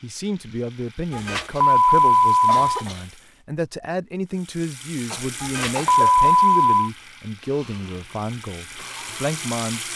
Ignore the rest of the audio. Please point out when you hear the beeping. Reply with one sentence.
The beeping can be heard from 1.1 to 2.6 s and from 5.4 to 6.9 s.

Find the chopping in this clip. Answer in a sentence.
The chopping can't be heard in this clip.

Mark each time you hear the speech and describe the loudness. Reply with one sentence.
The speech can be heard from 0.0 to 9.8 s, at a steady volume.